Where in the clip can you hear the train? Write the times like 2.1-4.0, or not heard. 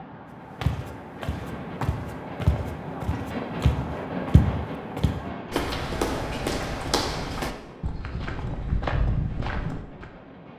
0.0-10.5.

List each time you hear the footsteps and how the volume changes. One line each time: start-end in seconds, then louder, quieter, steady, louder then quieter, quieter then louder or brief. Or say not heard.
0.6-10.1 steady.